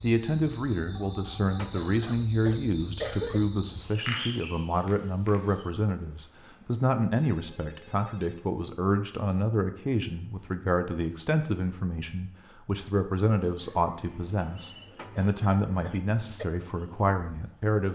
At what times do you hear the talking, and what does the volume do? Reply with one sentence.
You can hear the talking from 0.0 to 17.9 s, at a steady volume.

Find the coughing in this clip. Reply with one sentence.
You can hear the coughing from 1.5 to 3.5 s and from 14.9 to 16.4 s.